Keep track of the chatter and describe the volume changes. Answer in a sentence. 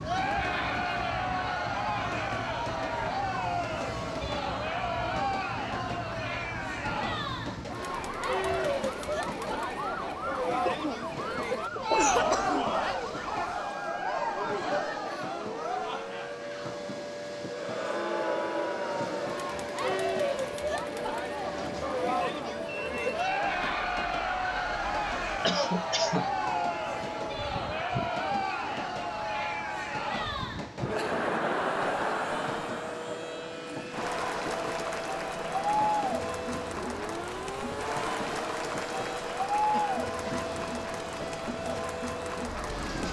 The loudness of the chatter stays about the same.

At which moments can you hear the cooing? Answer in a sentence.
You can't hear the cooing here.